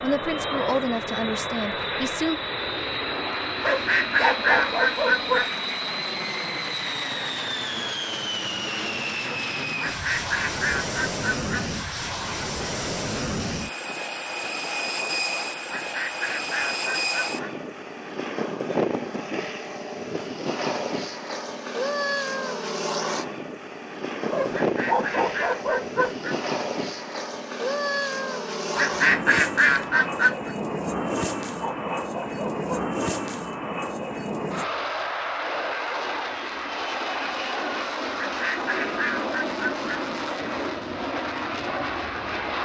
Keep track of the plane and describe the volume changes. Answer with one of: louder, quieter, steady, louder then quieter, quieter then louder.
steady.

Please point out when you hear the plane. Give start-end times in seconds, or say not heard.
0.0-42.5.